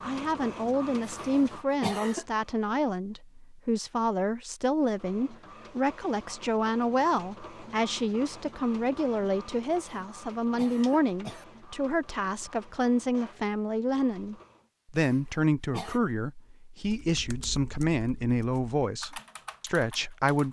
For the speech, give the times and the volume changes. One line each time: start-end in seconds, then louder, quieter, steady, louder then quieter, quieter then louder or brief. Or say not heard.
0.0-20.4 steady.